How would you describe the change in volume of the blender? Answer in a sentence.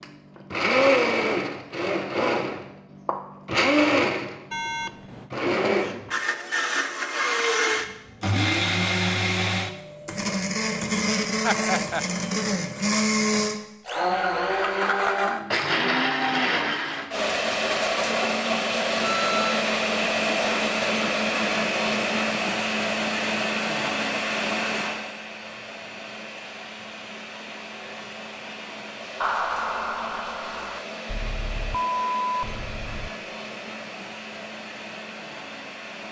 The loudness of the blender goes down.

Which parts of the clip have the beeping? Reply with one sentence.
The beeping can be heard from 4.5 to 5.3 s, from 19.0 to 19.6 s and from 31.1 to 33.1 s.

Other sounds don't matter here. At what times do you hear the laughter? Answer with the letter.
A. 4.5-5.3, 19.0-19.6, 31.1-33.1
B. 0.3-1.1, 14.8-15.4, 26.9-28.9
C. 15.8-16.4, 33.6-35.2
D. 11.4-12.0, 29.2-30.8
D.